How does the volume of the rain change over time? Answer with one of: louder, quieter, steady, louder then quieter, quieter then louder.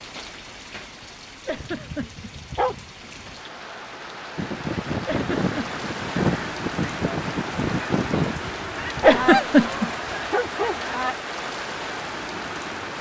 louder.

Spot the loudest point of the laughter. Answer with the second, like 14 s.
9 s.